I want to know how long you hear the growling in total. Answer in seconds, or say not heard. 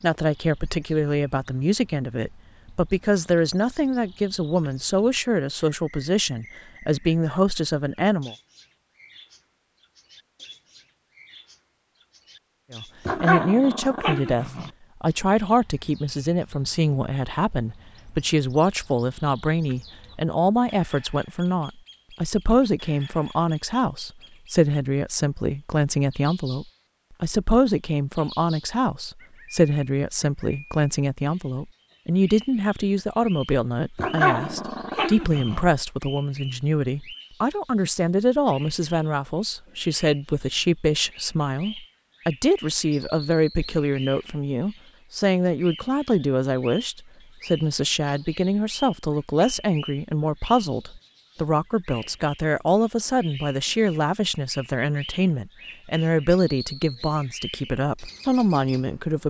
3 s.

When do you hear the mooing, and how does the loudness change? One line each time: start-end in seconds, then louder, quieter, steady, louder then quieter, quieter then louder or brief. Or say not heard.
not heard.